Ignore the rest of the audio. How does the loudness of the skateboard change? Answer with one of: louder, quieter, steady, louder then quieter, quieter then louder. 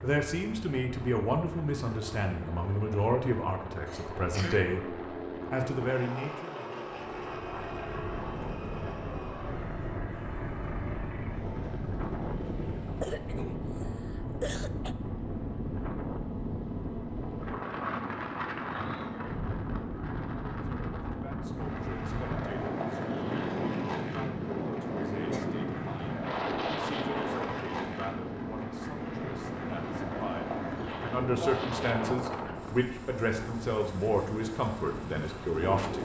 steady.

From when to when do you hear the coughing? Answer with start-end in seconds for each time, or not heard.
3.9-4.7, 13.0-14.9, 24.8-25.5.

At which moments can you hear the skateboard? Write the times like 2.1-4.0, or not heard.
21.5-31.3.